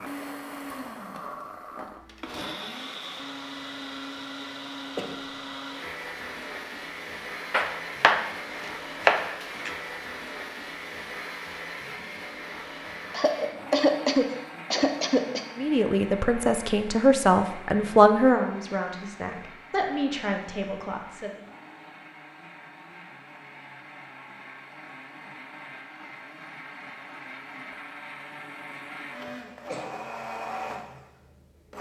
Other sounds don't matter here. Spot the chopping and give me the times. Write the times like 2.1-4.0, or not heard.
7.5-9.8.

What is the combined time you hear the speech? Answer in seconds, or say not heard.
6 s.